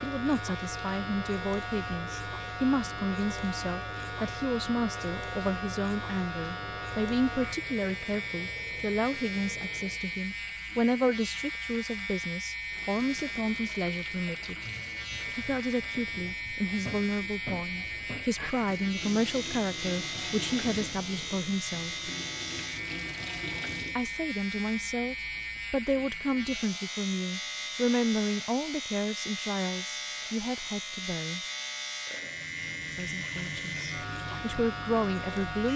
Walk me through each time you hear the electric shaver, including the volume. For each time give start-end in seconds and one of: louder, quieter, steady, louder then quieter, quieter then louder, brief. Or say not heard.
0.0-35.7 steady.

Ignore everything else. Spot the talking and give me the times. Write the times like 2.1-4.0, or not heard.
0.0-14.7, 15.3-22.1, 23.9-31.4, 33.0-35.7.